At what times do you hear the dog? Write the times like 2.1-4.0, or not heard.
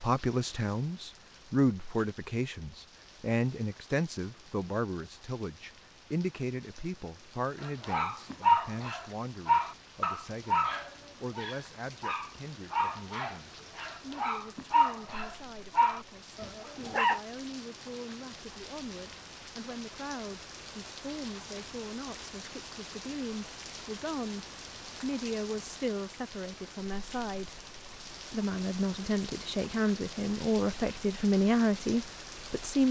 7.6-17.2.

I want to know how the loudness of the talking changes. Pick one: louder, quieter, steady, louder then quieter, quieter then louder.
quieter then louder.